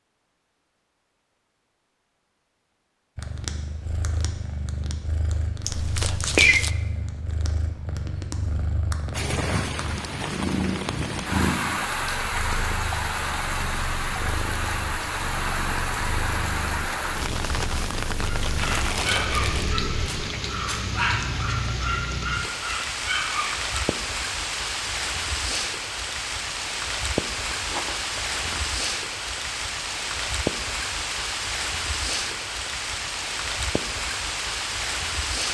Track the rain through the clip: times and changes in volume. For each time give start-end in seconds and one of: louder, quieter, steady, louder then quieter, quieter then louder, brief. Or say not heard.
9.1-35.4 steady.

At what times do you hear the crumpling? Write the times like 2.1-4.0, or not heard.
5.7-6.7, 18.7-19.8, 27.4-28.7.